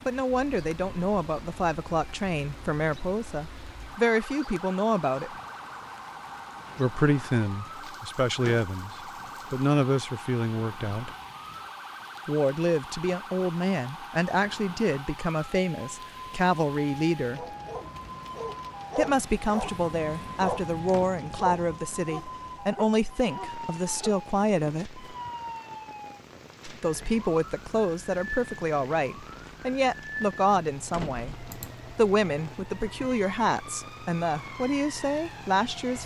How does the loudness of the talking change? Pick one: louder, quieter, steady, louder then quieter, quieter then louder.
steady.